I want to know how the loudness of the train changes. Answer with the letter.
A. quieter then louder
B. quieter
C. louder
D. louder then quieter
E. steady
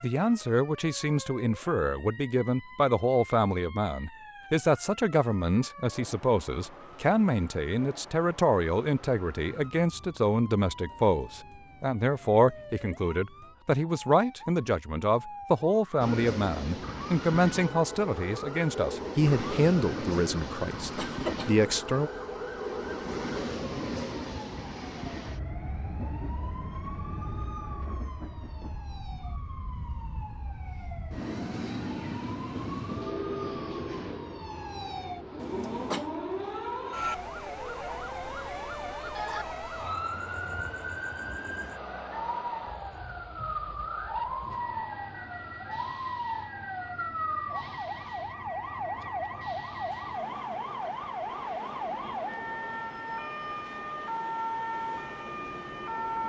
B.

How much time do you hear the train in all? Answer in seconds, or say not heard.
40 s.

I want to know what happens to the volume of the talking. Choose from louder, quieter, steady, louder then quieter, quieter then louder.
steady.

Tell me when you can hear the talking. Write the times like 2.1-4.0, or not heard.
0.0-22.1.